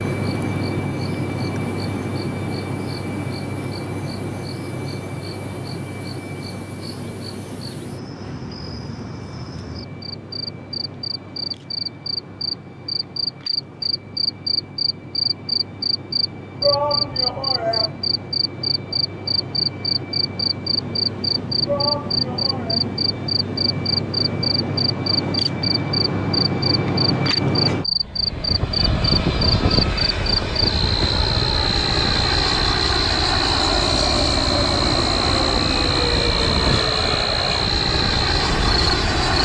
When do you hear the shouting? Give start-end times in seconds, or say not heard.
16.6-17.9, 21.6-22.8.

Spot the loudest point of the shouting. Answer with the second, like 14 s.
17 s.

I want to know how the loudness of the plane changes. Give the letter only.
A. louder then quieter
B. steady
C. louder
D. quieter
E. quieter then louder
E.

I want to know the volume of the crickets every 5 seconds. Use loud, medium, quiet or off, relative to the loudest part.
quiet, quiet, loud, loud, loud, loud, loud, loud.